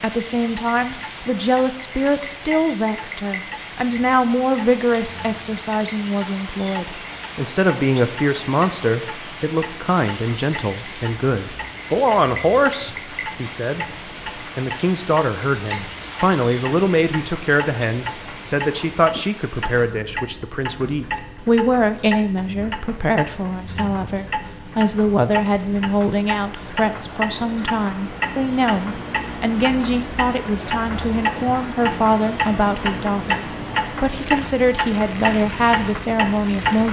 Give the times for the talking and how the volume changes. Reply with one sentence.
You can hear the talking from 0.0 to 36.8 s, at a steady volume.